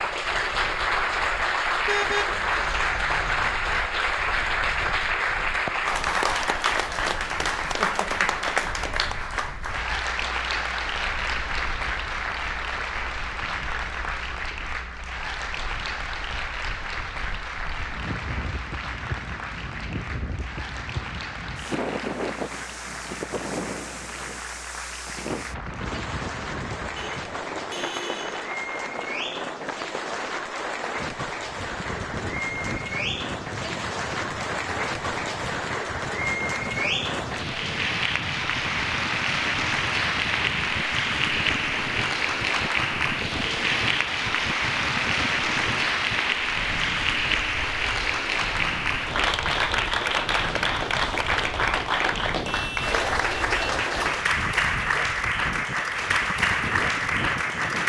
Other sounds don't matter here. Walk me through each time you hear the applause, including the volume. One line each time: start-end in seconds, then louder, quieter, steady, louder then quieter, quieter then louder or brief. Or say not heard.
0.0-57.8 quieter then louder.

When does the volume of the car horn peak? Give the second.
2 s.